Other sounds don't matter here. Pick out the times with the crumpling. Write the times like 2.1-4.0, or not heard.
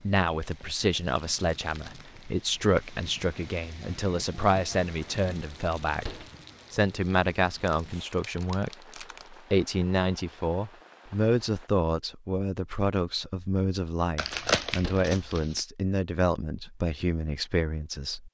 0.4-2.2, 7.7-9.4, 14.2-15.6.